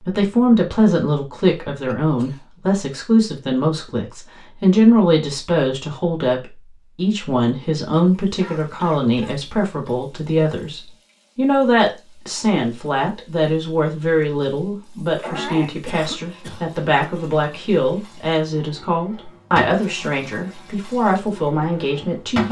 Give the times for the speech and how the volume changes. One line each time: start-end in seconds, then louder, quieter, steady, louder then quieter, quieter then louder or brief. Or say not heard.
0.1-22.4 steady.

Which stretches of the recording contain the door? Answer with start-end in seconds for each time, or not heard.
not heard.